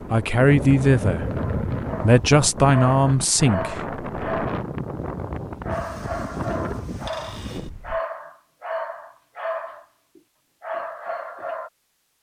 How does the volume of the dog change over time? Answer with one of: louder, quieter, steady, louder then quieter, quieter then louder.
steady.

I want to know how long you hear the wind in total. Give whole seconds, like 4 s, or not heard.
8 s.